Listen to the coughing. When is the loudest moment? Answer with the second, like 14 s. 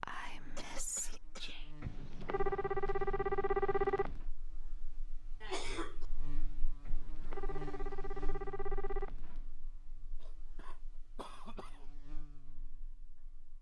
6 s.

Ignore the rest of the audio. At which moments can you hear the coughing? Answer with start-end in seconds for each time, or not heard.
0.3-1.6, 5.4-6.0, 10.2-11.8.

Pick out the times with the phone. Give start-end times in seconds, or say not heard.
1.8-4.2, 6.8-9.5.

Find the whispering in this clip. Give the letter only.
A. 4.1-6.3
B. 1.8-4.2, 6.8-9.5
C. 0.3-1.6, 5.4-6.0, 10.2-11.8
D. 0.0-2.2
D.